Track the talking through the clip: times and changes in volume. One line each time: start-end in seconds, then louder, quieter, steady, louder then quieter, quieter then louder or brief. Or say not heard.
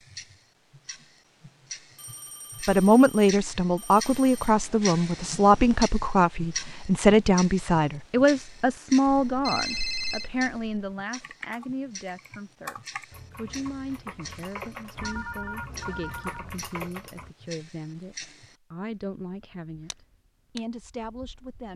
2.6-21.7 quieter.